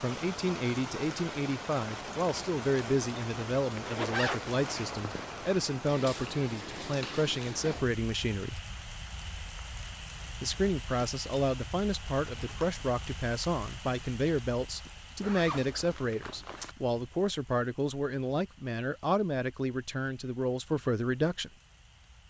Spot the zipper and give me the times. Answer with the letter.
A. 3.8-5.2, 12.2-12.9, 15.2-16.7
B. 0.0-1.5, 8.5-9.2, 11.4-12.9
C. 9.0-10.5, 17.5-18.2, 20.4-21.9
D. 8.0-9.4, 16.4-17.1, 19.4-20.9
A.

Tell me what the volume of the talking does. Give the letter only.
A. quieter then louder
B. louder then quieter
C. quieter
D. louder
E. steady
E.